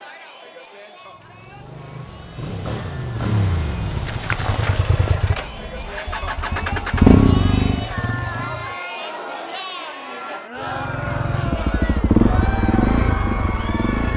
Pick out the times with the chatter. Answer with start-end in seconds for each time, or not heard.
0.0-14.1.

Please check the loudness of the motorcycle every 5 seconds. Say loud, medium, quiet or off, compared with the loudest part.
medium, loud, loud.